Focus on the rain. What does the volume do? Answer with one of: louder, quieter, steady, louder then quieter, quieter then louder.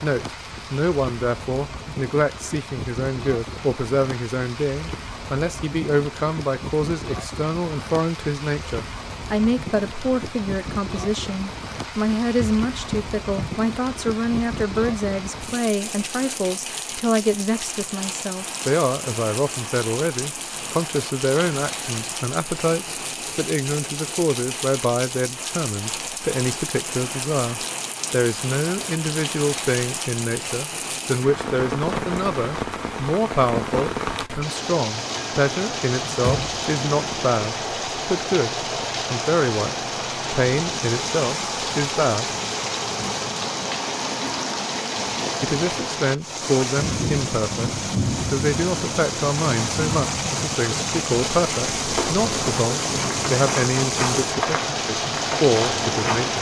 louder.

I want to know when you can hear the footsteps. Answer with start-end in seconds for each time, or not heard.
51.6-56.3.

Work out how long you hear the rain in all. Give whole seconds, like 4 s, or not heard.
56 s.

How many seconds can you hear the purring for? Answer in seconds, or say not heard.
not heard.